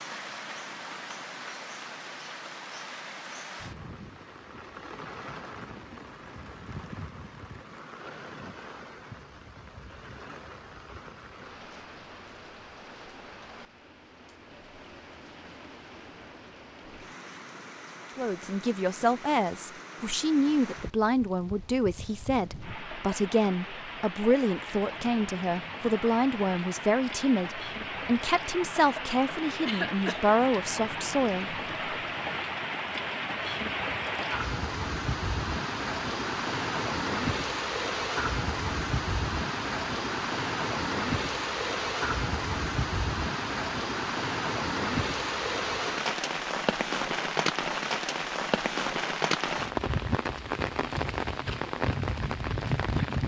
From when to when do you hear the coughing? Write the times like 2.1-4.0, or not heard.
29.6-30.2.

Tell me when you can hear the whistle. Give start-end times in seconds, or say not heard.
not heard.